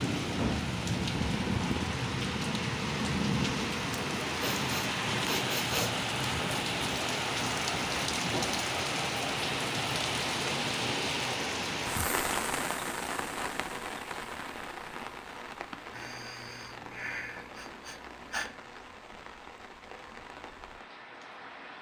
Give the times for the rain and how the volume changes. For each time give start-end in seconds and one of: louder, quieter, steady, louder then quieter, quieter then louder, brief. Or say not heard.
0.0-21.7 quieter.